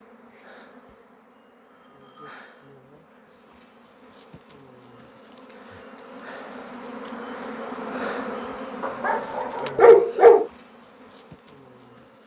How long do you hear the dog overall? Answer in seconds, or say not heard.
2 s.